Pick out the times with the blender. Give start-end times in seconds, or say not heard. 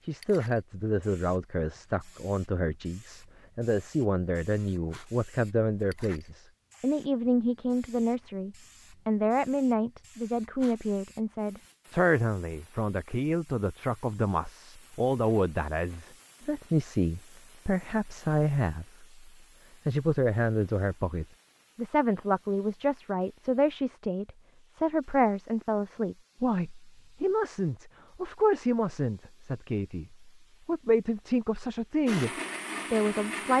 32.0-33.5.